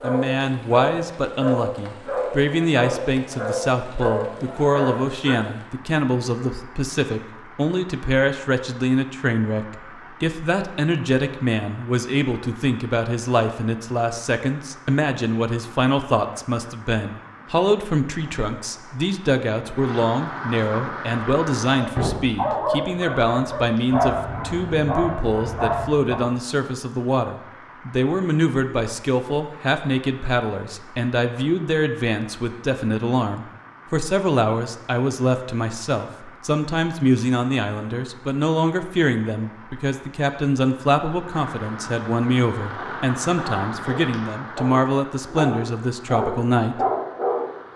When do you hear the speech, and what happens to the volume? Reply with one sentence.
You can hear the speech from 0.0 to 46.9 s, at a steady volume.